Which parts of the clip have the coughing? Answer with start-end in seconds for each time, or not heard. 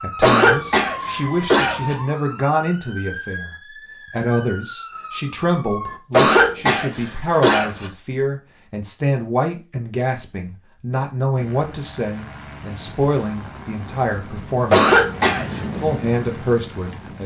0.2-1.9, 6.1-7.9, 14.7-15.6.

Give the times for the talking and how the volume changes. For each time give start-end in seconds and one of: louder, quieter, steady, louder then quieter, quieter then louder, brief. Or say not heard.
0.0-15.1 steady
15.8-17.2 brief.